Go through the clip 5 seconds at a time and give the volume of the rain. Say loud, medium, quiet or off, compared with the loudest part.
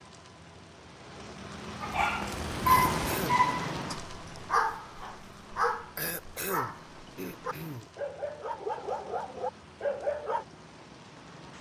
loud, quiet, quiet.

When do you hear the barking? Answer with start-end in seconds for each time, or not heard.
1.8-10.4.